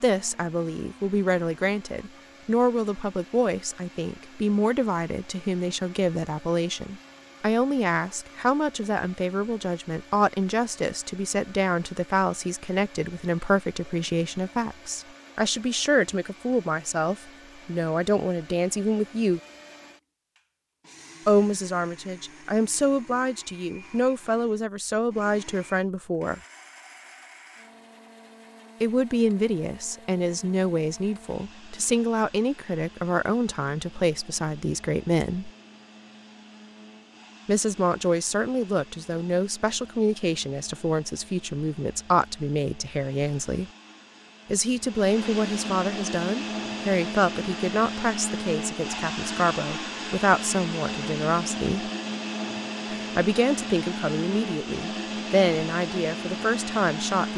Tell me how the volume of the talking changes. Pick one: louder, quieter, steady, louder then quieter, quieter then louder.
steady.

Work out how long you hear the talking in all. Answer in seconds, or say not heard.
49 s.